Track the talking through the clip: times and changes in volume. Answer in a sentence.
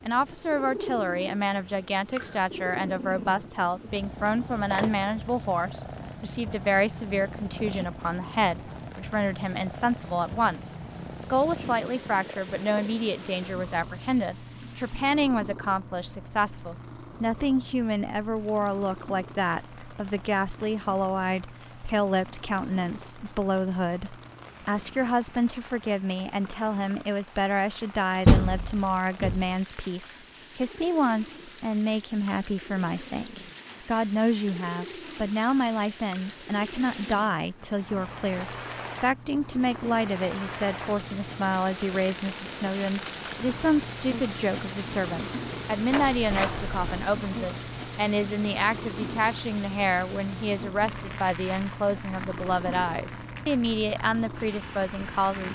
The talking can be heard from 0.0 to 55.4 s, at a steady volume.